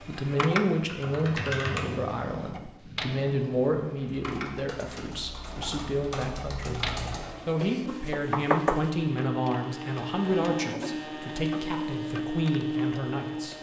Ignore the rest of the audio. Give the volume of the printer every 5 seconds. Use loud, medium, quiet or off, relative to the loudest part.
medium, medium, loud.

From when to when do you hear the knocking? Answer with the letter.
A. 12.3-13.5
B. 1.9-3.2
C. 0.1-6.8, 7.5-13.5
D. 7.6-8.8
D.